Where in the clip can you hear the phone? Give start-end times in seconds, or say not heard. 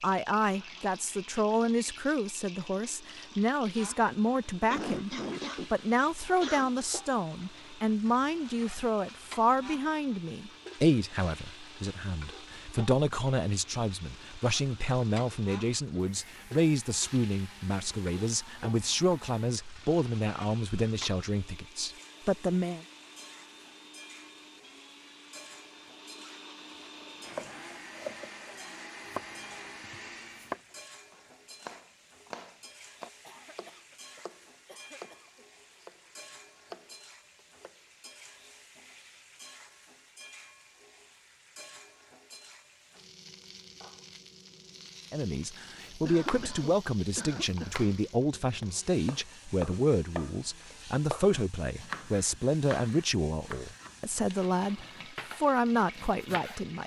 not heard.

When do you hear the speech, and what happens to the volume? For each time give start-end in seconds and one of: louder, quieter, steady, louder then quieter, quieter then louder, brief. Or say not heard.
0.0-22.9 steady
45.1-56.8 steady.